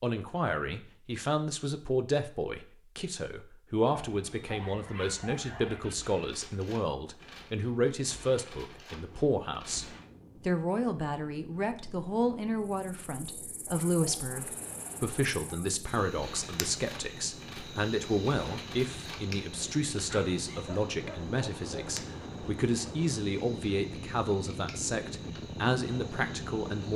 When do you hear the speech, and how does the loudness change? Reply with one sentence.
The speech can be heard from 0.0 to 26.9 s, at a steady volume.